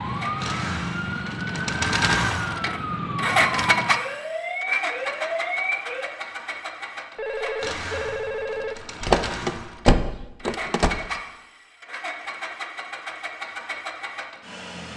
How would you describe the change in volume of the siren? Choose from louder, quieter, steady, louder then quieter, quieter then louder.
steady.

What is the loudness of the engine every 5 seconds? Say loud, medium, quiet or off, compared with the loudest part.
loud, medium, medium.